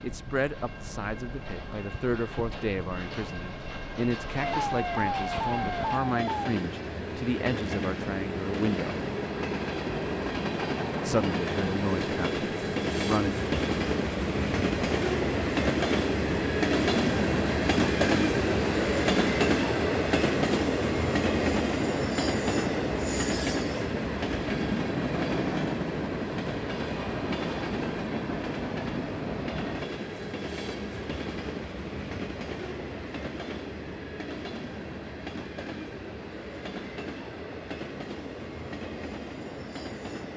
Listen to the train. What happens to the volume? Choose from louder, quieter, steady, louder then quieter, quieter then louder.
louder then quieter.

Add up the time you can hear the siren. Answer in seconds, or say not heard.
2 s.